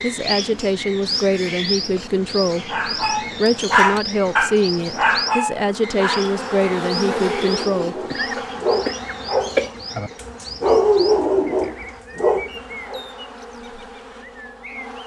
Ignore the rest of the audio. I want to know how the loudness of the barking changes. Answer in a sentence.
The volume of the barking goes down, then up.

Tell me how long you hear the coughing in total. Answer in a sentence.
You can hear the coughing for 2 seconds altogether.